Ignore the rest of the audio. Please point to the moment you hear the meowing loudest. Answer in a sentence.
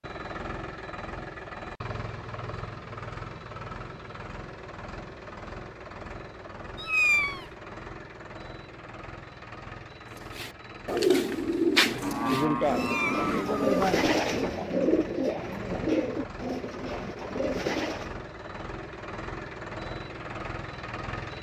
The volume of the meowing peaks at 7 seconds.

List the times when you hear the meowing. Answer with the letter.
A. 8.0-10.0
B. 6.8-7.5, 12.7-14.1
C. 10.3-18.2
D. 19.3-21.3
B.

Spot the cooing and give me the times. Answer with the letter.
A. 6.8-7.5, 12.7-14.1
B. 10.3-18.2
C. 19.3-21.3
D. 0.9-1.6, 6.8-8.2
B.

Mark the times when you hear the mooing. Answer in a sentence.
The mooing can be heard from 12.0 to 14.1 s.